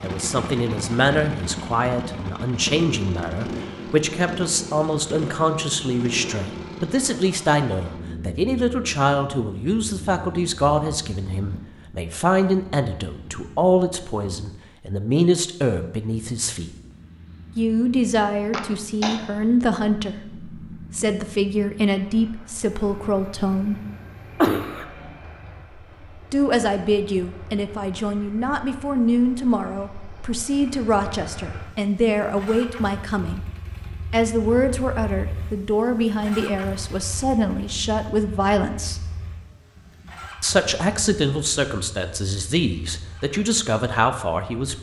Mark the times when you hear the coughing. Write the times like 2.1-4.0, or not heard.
18.5-19.2, 22.8-24.9.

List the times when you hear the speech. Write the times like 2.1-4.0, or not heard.
0.0-16.7, 17.6-23.8, 26.3-33.5, 34.1-39.0, 40.4-44.7.